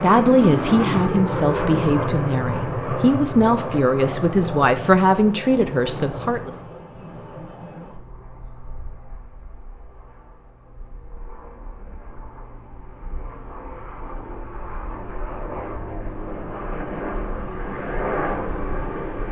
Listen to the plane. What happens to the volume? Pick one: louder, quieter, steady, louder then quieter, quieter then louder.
quieter then louder.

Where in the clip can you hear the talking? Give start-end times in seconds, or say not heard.
0.0-6.5.